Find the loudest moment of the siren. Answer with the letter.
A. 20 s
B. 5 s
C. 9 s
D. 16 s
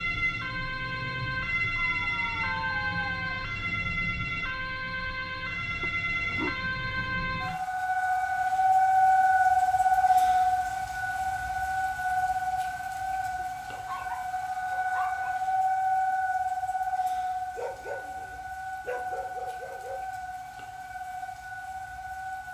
C.